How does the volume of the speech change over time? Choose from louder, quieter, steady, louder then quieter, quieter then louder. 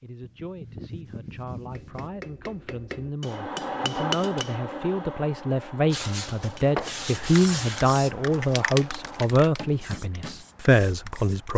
louder.